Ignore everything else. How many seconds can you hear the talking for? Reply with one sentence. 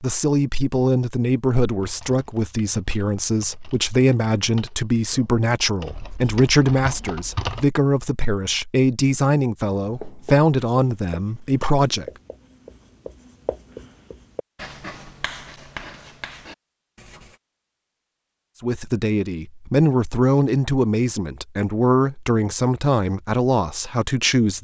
The talking can be heard for 18 seconds in total.